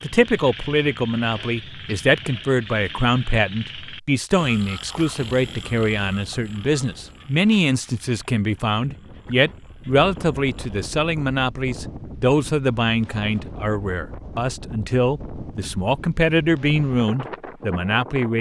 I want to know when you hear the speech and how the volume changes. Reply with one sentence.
You can hear the speech from 0.0 to 18.3 s, at a steady volume.